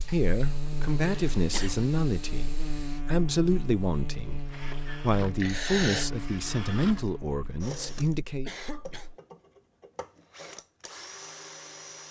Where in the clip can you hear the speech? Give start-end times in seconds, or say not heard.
0.1-8.5.